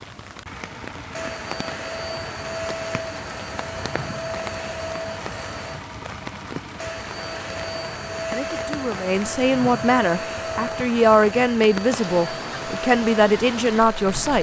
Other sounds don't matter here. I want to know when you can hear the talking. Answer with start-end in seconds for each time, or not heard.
8.3-14.3.